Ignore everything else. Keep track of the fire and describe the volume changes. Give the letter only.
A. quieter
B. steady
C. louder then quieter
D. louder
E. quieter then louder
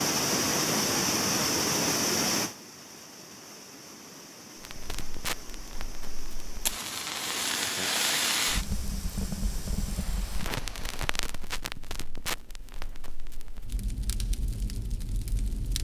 C.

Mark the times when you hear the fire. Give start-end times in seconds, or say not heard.
4.6-15.7.